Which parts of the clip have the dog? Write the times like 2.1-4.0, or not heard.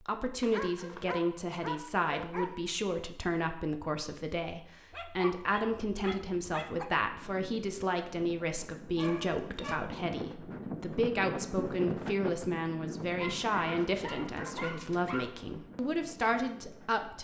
0.4-2.5, 4.9-6.8, 8.9-9.8, 13.2-15.3.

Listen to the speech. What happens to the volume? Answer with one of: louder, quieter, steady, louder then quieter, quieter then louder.
steady.